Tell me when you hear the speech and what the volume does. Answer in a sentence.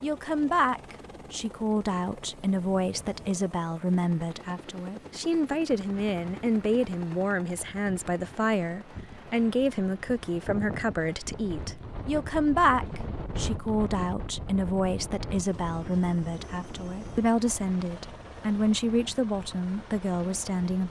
You can hear the speech from 0.0 to 20.8 s, at a steady volume.